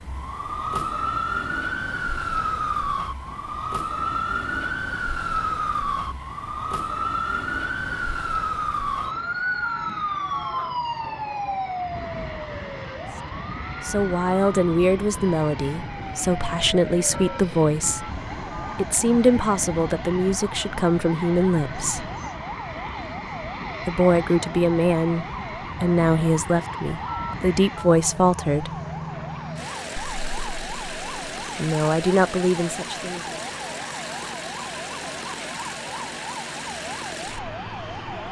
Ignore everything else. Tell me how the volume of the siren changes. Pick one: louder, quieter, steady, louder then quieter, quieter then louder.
quieter.